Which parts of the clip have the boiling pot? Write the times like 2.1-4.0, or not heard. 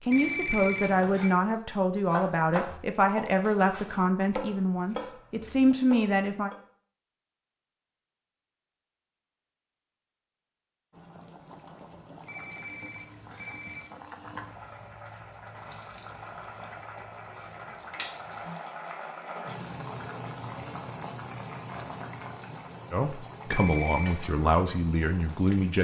10.9-25.7.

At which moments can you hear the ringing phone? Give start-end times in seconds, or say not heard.
0.1-1.4, 12.2-13.9, 23.5-24.2.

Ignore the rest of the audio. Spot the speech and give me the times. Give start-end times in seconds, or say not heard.
0.1-6.5, 22.9-25.7.